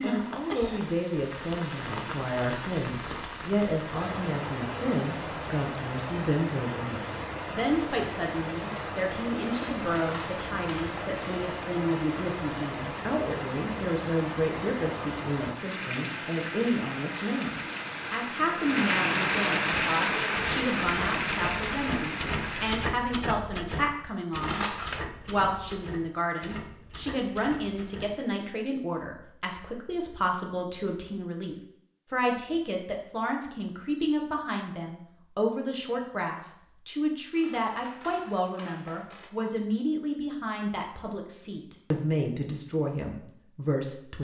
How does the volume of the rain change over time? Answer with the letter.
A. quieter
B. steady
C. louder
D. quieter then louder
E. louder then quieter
C.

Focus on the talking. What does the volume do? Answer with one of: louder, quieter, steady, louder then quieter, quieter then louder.
steady.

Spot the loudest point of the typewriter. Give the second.
23 s.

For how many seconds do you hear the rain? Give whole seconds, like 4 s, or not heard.
23 s.